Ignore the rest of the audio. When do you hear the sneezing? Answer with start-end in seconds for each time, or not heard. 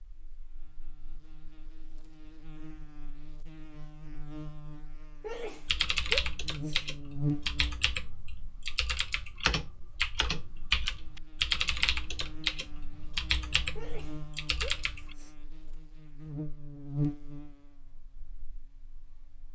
5.2-6.8, 13.8-15.3.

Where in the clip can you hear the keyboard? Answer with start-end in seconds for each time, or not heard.
5.7-15.2.